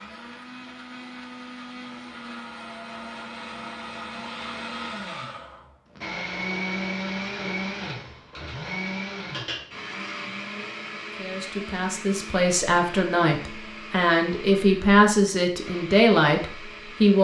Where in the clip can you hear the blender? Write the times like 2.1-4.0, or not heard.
0.0-17.1.